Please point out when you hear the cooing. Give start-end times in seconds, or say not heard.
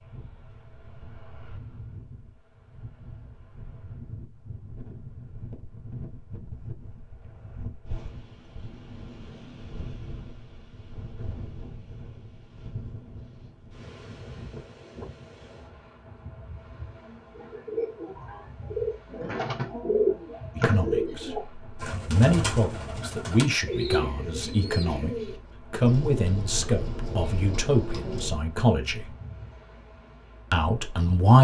17.4-28.4.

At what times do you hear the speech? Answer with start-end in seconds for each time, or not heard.
20.6-29.1, 30.5-31.3.